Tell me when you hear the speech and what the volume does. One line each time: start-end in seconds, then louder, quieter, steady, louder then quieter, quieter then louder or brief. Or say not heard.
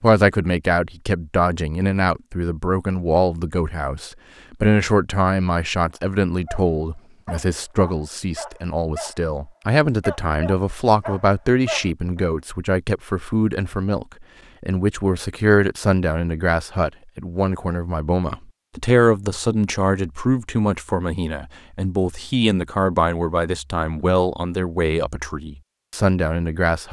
0.0-26.8 steady.